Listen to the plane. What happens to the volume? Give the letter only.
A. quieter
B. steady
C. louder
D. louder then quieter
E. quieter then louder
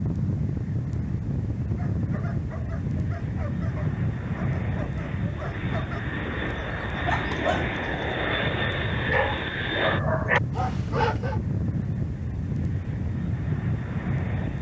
B.